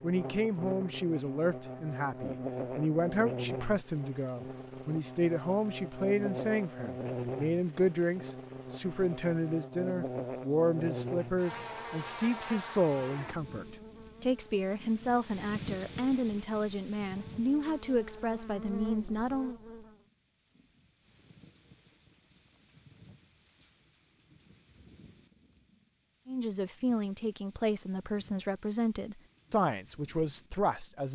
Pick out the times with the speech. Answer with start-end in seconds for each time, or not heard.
0.0-19.6, 26.2-31.1.